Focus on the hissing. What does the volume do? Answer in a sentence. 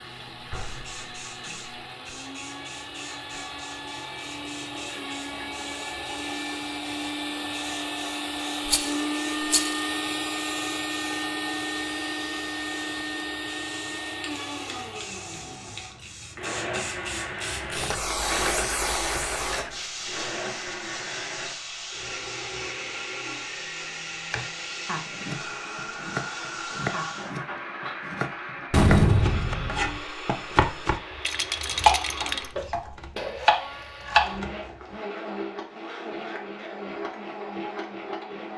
The loudness of the hissing goes up, then down.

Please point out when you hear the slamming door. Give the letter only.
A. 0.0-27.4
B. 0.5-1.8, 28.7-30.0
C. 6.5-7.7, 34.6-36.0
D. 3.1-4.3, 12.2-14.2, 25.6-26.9
B.